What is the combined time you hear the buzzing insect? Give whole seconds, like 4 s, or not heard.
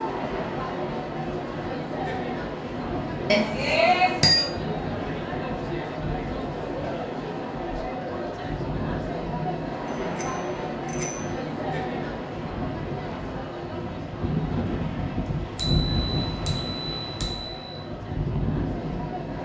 not heard.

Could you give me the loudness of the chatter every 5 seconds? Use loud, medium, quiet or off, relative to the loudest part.
loud, loud, loud, medium.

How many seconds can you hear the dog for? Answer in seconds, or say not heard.
not heard.